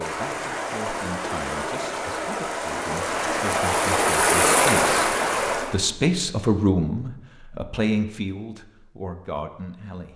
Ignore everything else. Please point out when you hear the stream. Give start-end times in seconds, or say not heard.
0.0-5.8.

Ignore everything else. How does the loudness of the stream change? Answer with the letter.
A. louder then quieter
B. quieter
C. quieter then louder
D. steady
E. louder
E.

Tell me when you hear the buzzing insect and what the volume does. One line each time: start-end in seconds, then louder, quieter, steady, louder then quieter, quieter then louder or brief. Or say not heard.
not heard.